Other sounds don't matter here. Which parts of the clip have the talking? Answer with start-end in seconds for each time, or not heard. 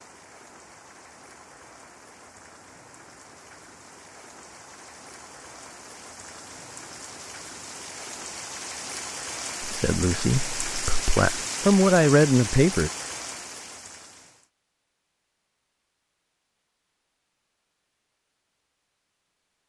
9.6-12.9.